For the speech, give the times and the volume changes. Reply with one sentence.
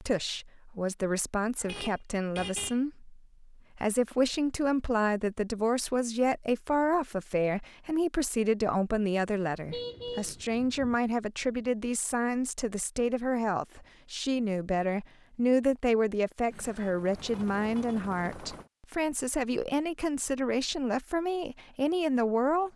You can hear the speech from 0.0 to 22.7 s, at a steady volume.